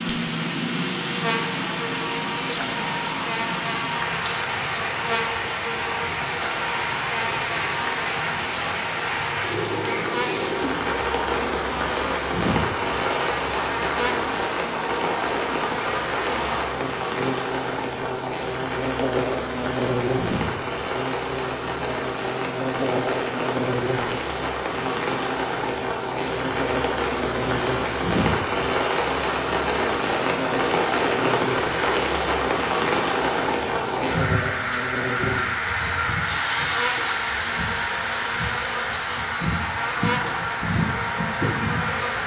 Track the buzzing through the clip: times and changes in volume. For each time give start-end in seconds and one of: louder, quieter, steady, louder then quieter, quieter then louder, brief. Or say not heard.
0.0-42.2 steady.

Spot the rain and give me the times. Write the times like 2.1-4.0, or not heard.
0.0-42.2.